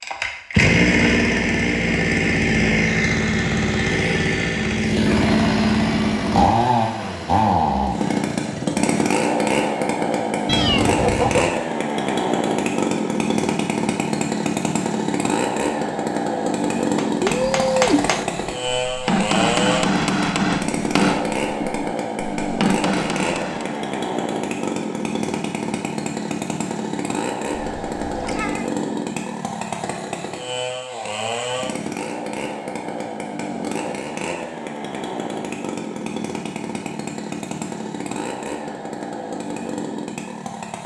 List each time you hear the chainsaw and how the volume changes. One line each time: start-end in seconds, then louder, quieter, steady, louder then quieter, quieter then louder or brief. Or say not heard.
0.0-40.8 quieter.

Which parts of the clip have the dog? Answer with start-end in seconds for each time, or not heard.
not heard.